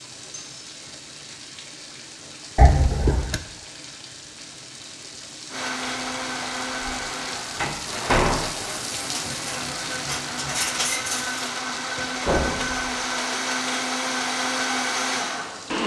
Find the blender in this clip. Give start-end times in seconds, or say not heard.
5.5-15.8.